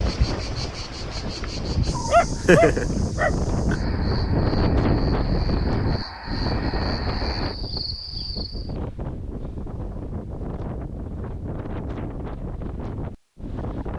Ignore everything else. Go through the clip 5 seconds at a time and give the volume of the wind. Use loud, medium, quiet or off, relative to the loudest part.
loud, loud, medium.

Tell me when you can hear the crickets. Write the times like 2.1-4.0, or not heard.
0.0-8.8.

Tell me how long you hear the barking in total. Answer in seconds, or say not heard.
2 s.